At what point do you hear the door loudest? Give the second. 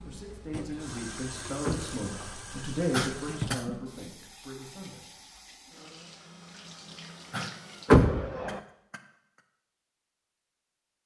8 s.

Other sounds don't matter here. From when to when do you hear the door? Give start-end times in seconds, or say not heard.
1.6-2.4, 7.9-8.6.